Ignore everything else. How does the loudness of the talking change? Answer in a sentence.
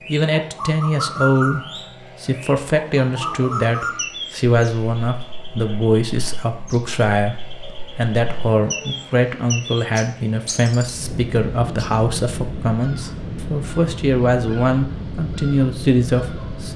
The volume of the talking stays about the same.